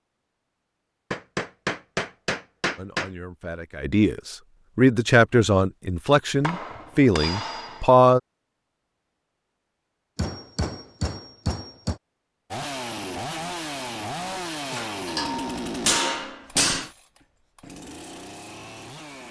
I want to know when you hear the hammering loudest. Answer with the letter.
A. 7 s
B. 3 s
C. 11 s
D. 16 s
D.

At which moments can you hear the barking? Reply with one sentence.
You can't hear the barking here.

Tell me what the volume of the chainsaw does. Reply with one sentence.
The volume of the chainsaw goes down.